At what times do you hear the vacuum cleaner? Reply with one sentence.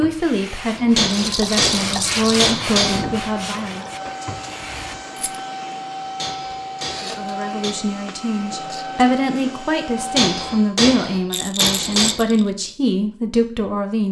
You can hear the vacuum cleaner from 2.8 to 10.8 s.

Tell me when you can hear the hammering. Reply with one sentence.
The hammering can be heard from 0.8 to 3.0 s, from 6.0 to 7.8 s and from 9.9 to 12.2 s.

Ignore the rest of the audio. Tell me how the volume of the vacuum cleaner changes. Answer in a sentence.
The loudness of the vacuum cleaner stays about the same.